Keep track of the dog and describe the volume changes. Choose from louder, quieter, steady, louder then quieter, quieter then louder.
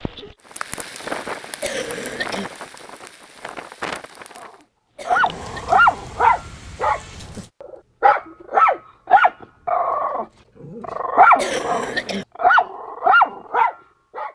steady.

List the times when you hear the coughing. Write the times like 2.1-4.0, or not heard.
1.6-2.5, 5.0-5.8, 11.3-12.2.